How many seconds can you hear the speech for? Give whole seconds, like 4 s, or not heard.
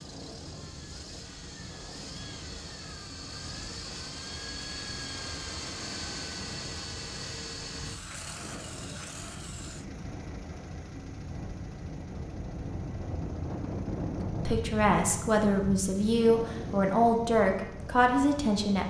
4 s.